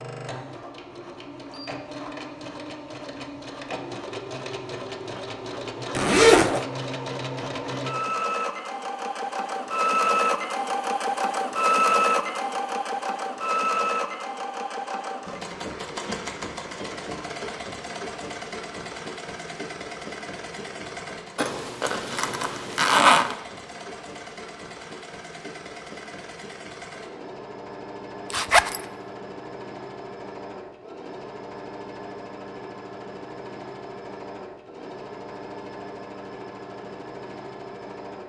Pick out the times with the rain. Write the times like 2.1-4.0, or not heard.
not heard.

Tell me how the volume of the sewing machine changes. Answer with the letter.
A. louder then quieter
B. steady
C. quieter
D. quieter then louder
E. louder
A.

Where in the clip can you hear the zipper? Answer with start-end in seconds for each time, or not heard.
6.0-6.7, 21.4-23.4, 28.3-28.8.